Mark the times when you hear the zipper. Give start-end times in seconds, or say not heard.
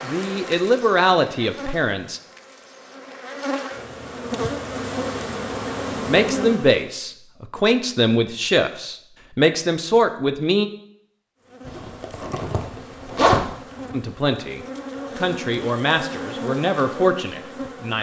11.7-13.9.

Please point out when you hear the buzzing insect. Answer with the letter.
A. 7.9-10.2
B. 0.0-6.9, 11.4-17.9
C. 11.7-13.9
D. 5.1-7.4
B.